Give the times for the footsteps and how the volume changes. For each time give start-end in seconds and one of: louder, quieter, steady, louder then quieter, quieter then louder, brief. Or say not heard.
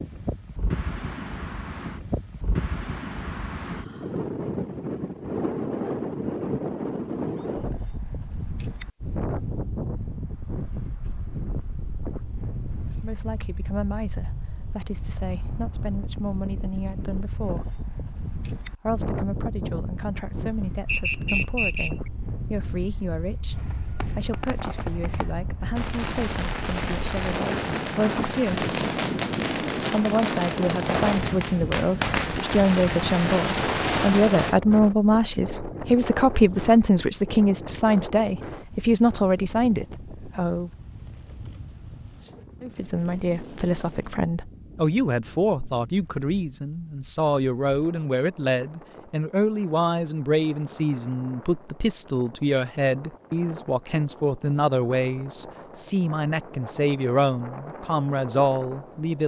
not heard.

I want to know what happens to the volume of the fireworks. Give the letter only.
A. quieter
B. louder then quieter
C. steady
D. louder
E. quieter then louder
D.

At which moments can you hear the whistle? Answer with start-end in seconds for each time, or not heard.
20.9-22.1.